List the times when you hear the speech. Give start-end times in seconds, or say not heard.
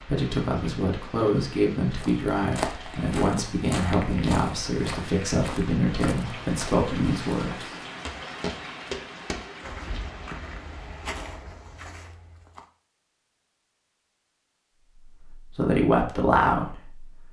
0.1-7.5, 15.2-17.2.